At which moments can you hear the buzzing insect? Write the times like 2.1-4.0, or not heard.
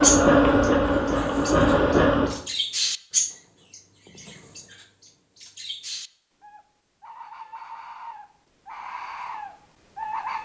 0.0-2.4.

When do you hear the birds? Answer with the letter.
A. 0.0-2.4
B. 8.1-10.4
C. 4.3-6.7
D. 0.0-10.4
D.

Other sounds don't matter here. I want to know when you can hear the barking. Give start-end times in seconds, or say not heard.
not heard.